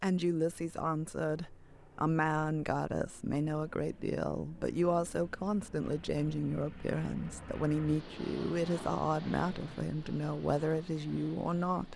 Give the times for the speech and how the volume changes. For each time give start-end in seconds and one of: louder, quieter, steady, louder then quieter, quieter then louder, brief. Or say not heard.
0.0-11.9 steady.